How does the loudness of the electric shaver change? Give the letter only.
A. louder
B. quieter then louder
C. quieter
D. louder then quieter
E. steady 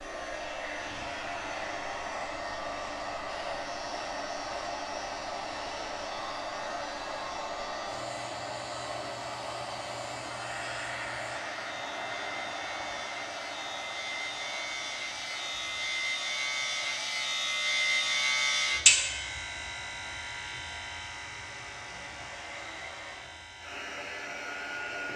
D.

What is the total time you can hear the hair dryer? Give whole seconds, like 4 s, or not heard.
25 s.